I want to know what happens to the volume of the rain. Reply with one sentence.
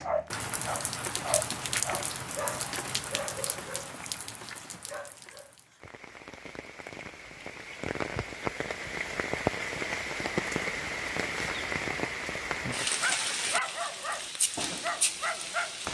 The loudness of the rain goes down, then up.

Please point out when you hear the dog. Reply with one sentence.
You can hear the dog from 0.0 to 3.9 s, from 4.8 to 5.5 s and from 12.8 to 15.8 s.